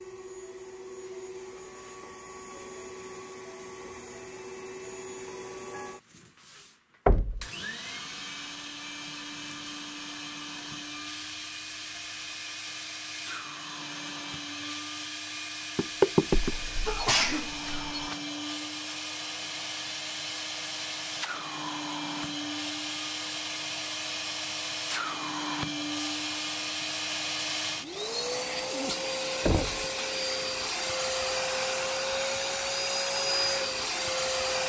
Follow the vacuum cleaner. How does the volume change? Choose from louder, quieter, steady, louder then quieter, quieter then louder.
louder.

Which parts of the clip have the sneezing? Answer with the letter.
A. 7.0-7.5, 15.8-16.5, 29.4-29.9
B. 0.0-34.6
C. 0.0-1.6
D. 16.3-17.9
D.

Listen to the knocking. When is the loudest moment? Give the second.
16 s.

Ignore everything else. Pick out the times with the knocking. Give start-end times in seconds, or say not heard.
7.0-7.5, 15.8-16.5, 29.4-29.9.